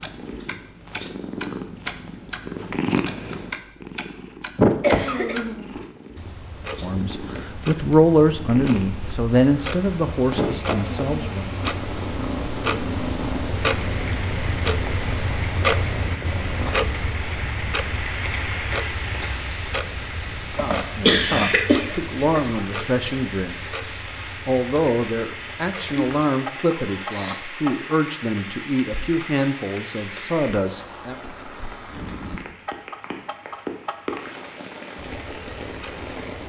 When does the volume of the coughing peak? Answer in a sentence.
The loudest moment of the coughing is at 21 seconds.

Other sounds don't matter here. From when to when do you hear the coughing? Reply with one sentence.
The coughing can be heard from 4.8 to 5.4 s, from 20.2 to 22.6 s and from 25.9 to 27.4 s.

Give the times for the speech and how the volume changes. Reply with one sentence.
You can hear the speech from 6.8 to 11.6 s, getting quieter; and from 20.6 to 31.1 s, at a steady volume.